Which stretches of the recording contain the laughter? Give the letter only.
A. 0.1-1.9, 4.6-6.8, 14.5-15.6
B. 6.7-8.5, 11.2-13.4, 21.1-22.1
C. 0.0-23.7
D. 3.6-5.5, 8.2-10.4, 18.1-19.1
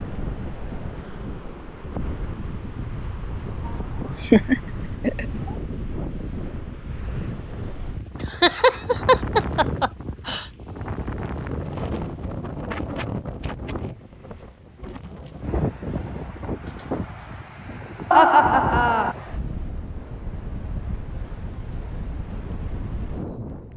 D.